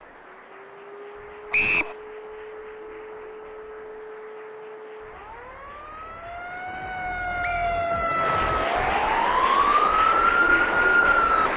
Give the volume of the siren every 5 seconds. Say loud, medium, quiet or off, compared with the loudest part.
quiet, medium, loud.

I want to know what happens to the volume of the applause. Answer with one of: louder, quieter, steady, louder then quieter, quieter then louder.
louder.